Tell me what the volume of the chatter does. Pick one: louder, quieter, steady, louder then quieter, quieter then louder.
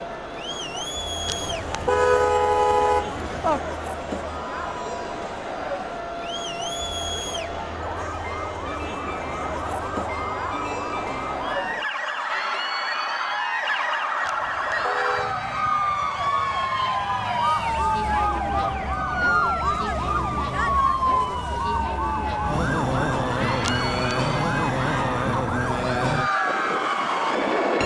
steady.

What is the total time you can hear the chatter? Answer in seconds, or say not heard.
28 s.